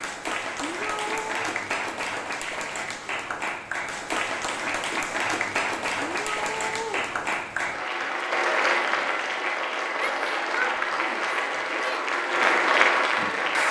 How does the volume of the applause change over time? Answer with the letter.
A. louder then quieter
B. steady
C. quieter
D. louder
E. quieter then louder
D.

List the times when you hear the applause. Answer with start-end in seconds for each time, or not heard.
0.0-13.6.